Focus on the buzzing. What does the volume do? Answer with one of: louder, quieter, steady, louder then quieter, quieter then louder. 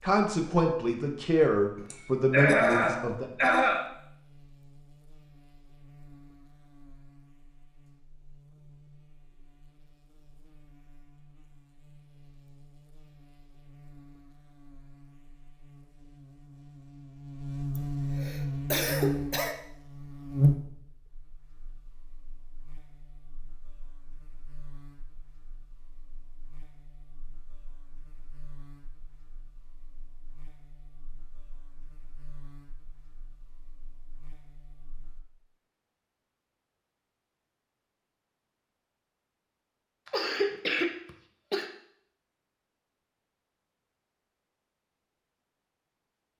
louder then quieter.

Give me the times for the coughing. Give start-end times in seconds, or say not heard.
1.9-3.9, 17.8-19.6, 40.0-41.6.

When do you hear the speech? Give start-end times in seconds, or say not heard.
0.0-3.2.